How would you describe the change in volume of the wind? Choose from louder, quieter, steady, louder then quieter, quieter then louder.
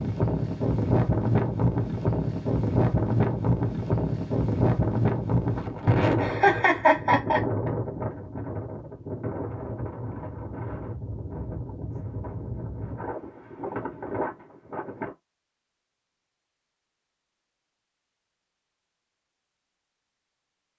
quieter.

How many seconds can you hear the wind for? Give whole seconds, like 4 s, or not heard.
15 s.